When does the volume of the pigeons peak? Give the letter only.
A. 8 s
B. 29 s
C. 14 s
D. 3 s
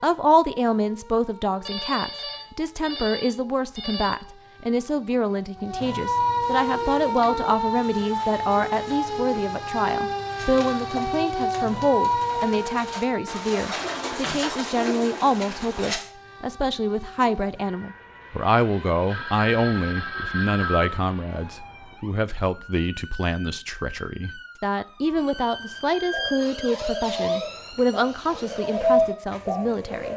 B.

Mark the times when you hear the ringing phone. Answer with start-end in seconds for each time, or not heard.
1.6-4.2, 19.1-21.0.